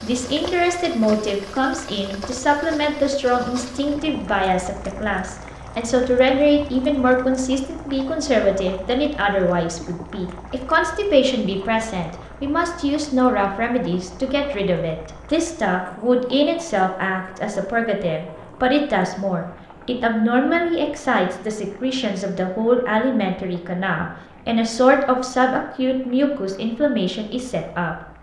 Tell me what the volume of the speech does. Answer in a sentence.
The volume of the speech stays about the same.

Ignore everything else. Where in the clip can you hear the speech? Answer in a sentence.
You can hear the speech from 0.0 to 27.9 s.